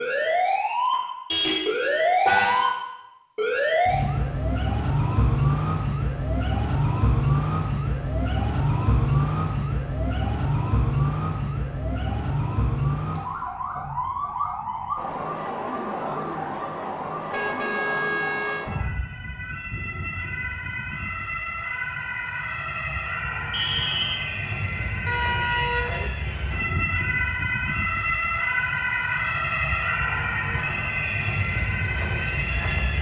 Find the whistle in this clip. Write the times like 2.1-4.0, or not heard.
23.5-24.2.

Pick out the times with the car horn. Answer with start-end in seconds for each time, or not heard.
1.3-2.6, 17.3-18.6, 25.1-26.1.